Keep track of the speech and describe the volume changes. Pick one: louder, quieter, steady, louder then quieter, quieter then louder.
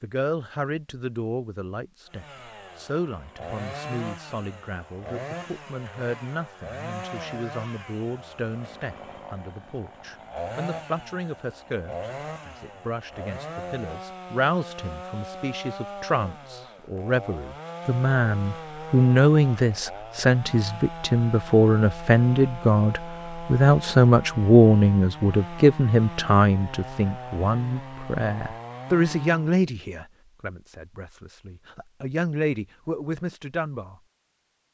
louder then quieter.